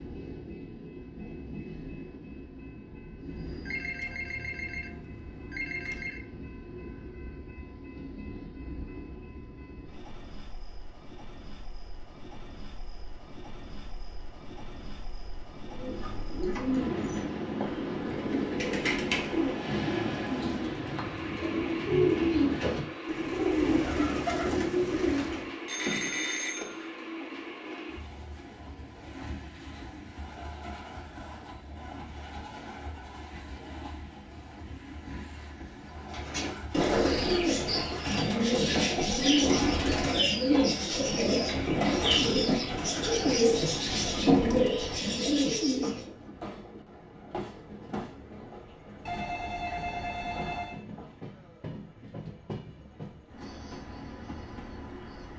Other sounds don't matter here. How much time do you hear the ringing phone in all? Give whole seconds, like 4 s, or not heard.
6 s.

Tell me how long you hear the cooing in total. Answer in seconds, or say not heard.
20 s.